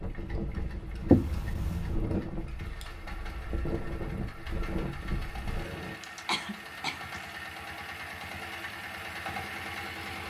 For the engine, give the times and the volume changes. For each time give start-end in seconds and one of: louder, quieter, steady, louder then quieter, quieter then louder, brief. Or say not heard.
0.0-10.2 louder.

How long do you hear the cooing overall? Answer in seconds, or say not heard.
not heard.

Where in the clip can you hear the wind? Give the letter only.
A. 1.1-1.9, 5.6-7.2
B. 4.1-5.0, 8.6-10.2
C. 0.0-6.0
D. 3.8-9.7
C.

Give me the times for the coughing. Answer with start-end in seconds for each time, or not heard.
1.1-1.9, 5.6-7.2.